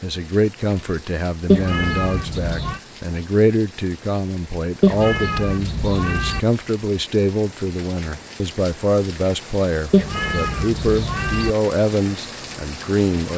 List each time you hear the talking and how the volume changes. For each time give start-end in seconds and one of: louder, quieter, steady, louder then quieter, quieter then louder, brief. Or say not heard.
0.0-13.3 steady.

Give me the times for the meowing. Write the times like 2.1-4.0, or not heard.
1.4-2.8, 4.8-6.4, 9.9-11.5.